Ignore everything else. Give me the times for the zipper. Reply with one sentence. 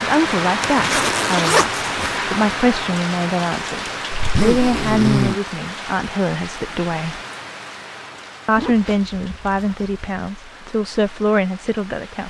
The zipper can be heard from 0.6 to 2.1 s, from 4.1 to 5.4 s and from 8.6 to 10.0 s.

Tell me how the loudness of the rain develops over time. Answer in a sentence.
The volume of the rain goes down.